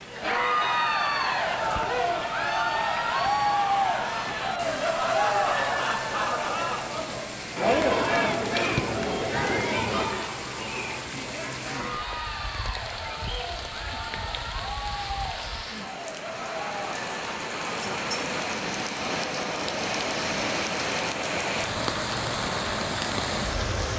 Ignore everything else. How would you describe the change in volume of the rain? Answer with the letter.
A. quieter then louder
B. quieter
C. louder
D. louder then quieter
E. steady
C.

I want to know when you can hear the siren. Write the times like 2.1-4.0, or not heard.
not heard.